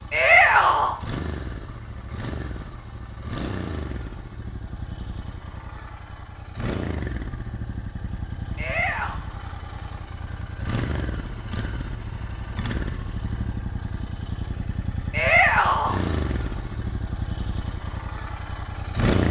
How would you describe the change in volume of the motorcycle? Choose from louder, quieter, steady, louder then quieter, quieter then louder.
steady.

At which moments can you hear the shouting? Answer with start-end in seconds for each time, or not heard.
0.1-0.9, 8.6-9.2, 15.1-16.0.